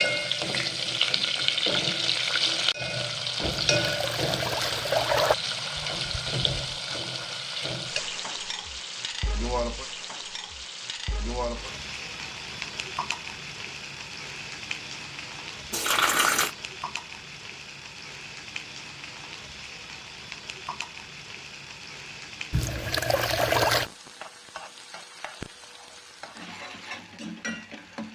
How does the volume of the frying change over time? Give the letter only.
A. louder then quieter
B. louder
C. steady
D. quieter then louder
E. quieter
E.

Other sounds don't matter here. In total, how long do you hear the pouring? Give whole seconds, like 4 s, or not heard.
4 s.